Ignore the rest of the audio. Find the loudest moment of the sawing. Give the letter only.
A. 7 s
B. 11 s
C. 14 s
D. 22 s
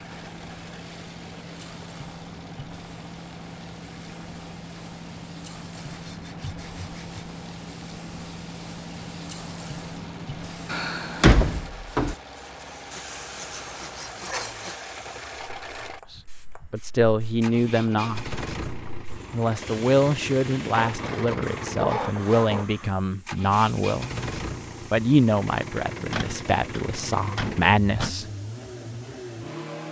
D.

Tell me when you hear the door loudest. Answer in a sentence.
The volume of the door peaks at 11 seconds.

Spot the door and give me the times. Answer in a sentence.
You can hear the door from 10.7 to 12.2 s and from 26.1 to 28.1 s.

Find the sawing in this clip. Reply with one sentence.
You can hear the sawing from 5.8 to 7.3 s, from 12.9 to 14.8 s and from 20.7 to 22.6 s.